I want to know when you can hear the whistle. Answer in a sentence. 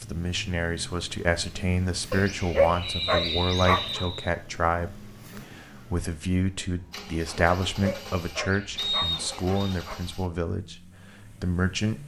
The whistle can be heard from 2.8 to 4.3 s and from 8.8 to 9.6 s.